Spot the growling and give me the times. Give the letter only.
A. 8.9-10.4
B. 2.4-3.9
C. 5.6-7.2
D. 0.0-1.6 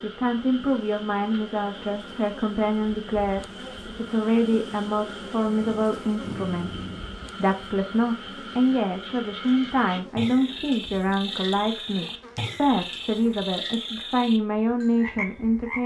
C.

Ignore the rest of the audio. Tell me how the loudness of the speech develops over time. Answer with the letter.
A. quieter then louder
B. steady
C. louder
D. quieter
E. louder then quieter
B.